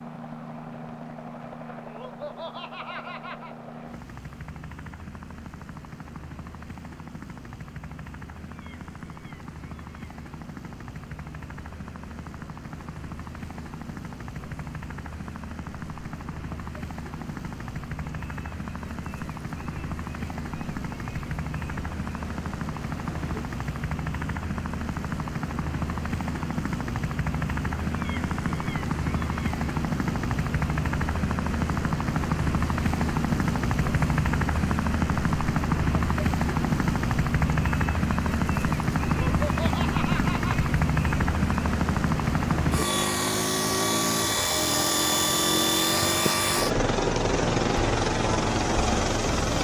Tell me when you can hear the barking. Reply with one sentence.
You can't hear the barking here.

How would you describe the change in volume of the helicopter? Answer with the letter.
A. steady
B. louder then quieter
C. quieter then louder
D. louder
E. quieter
D.